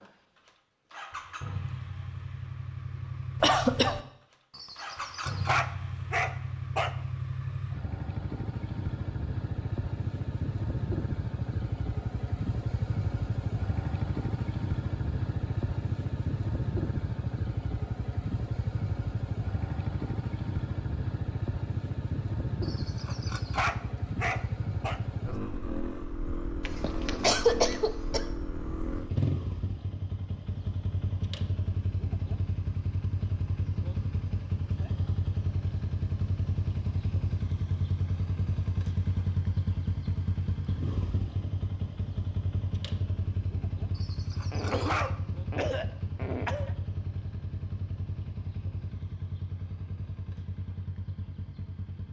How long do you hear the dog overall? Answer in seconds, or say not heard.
6 s.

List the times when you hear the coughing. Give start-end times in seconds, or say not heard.
3.4-4.0, 26.6-28.2, 44.5-46.8.